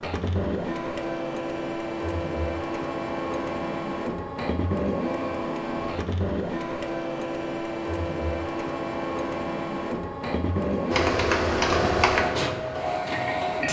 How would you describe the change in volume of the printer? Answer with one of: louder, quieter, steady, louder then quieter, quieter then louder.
steady.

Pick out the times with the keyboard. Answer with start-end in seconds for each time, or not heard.
10.9-13.6.